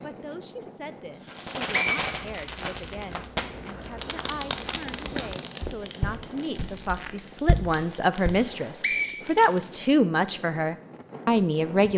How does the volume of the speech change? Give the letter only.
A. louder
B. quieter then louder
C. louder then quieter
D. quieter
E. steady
A.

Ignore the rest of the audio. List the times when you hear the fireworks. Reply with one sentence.
You can hear the fireworks from 1.2 to 9.8 s.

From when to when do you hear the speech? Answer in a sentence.
The speech can be heard from 0.0 to 11.9 s.